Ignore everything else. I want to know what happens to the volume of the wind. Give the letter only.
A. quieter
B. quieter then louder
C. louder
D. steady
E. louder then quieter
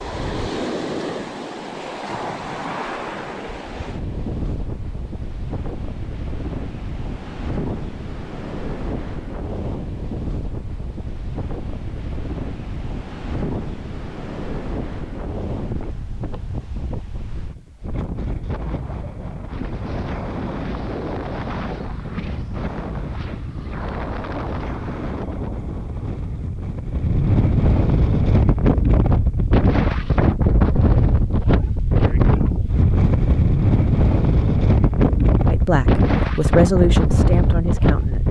C.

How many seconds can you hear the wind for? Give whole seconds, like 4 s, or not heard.
38 s.